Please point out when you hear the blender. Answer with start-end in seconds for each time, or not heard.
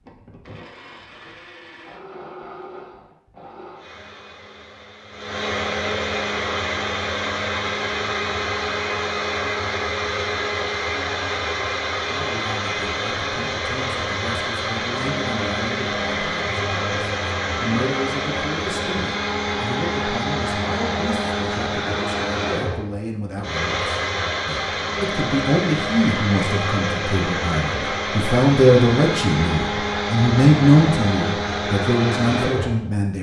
0.0-32.9.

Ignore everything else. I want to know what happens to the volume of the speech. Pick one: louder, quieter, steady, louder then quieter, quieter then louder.
louder.